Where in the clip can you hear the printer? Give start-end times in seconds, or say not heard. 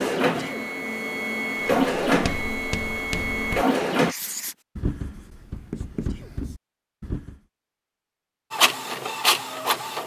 0.0-4.2, 8.5-10.0.